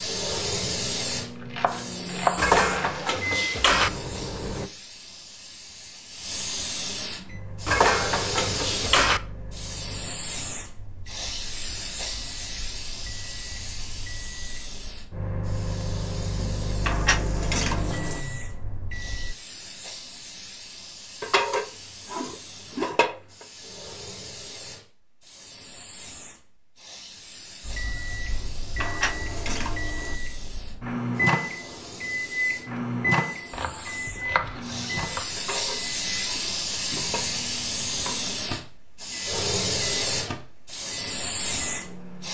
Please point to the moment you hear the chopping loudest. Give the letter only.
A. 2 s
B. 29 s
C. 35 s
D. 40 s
A.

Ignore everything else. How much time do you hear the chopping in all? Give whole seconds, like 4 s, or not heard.
4 s.